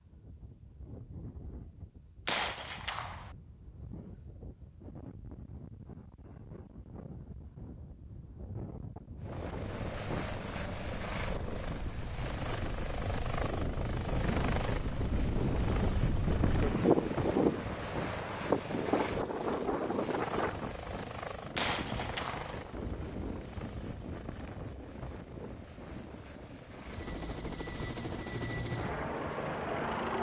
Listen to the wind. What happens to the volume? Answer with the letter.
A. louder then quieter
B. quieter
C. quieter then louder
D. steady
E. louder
A.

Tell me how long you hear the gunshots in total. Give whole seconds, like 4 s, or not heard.
2 s.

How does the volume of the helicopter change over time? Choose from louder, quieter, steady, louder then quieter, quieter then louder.
quieter then louder.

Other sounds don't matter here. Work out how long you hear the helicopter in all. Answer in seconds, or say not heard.
21 s.